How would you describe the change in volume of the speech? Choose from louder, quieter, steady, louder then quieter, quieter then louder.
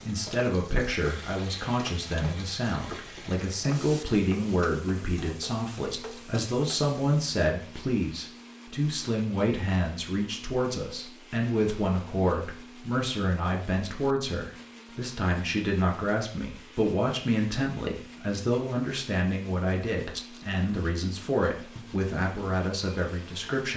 steady.